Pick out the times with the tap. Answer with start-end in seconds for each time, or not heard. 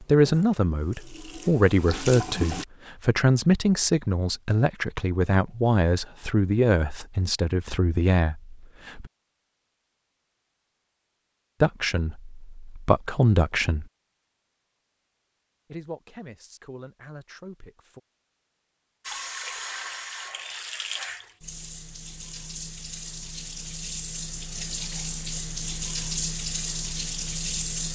0.0-2.6, 19.1-27.9.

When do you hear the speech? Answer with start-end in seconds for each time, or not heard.
0.0-9.1, 11.6-13.8, 15.7-18.0.